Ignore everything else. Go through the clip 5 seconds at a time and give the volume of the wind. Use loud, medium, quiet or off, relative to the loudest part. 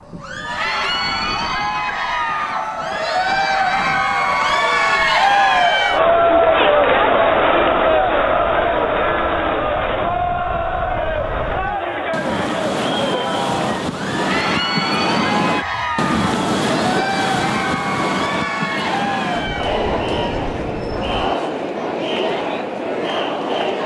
quiet, quiet, loud, loud, medium.